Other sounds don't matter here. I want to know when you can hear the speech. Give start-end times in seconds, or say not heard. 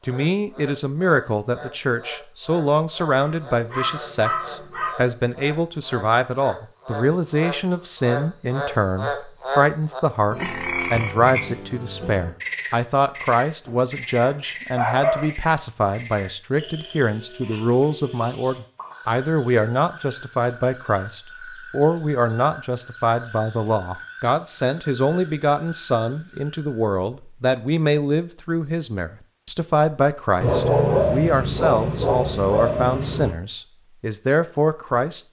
0.1-35.2.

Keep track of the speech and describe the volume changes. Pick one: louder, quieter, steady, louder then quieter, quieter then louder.
steady.